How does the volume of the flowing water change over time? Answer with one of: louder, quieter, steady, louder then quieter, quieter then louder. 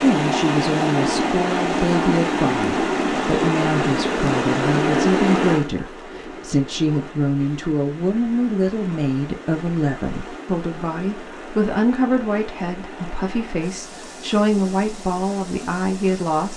quieter.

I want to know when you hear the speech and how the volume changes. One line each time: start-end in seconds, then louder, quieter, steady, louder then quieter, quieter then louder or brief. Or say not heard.
0.0-16.5 steady.